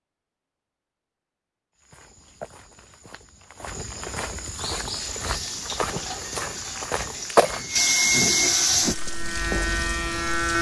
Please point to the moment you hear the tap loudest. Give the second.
8 s.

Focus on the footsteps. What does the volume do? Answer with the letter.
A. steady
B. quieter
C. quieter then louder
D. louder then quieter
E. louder
E.